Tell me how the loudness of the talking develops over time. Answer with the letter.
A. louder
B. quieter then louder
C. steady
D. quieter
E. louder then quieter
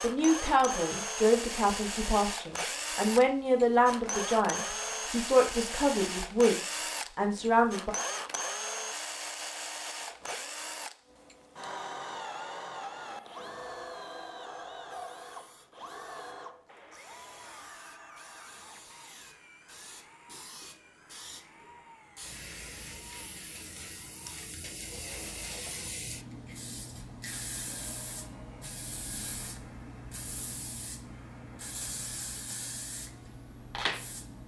C.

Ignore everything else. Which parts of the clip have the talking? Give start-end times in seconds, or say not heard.
0.0-8.0.